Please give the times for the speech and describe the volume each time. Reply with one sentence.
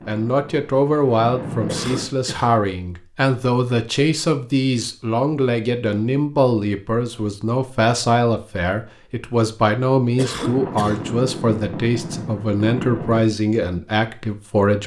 You can hear the speech from 0.1 to 14.8 s, at a steady volume.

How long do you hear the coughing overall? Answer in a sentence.
You can hear the coughing for 2 seconds altogether.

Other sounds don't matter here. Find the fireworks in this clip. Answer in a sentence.
The fireworks can be heard from 0.0 to 2.1 s and from 10.3 to 13.2 s.